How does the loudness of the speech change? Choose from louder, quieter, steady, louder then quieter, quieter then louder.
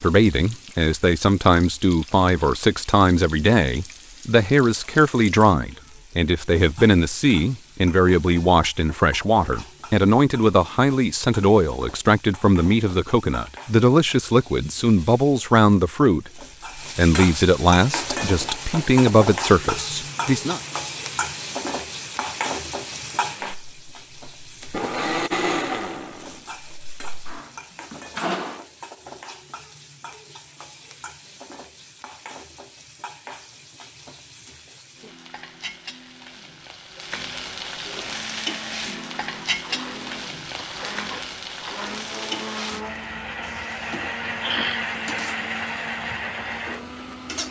steady.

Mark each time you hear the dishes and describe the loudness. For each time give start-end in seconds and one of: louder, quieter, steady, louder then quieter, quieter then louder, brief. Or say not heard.
not heard.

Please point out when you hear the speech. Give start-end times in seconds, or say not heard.
0.0-20.6.